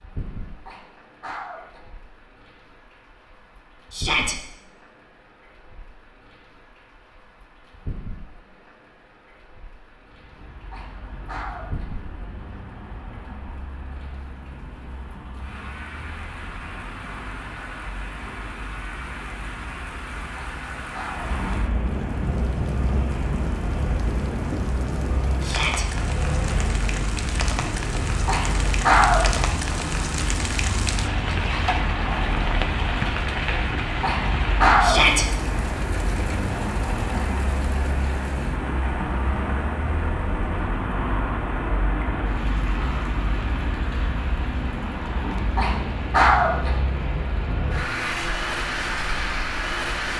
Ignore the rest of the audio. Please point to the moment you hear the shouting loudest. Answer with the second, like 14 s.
35 s.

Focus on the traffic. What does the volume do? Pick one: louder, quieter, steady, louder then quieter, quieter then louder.
louder.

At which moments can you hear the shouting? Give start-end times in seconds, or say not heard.
3.9-4.3, 25.4-25.9, 34.8-35.2.